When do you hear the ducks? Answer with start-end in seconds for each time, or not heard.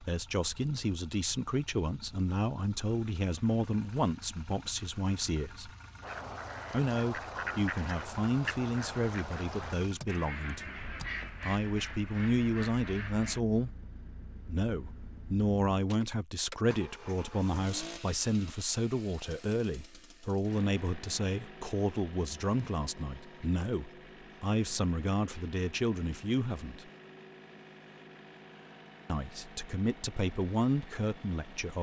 6.0-13.4.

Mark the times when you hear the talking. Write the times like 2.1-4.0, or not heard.
0.0-5.7, 6.7-13.7, 14.4-26.9, 29.1-31.7.